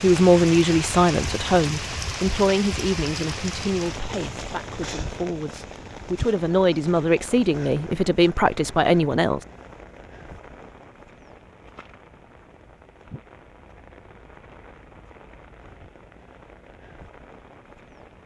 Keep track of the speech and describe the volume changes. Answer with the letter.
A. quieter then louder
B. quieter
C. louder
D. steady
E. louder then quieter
A.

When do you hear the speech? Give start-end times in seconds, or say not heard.
0.0-9.4.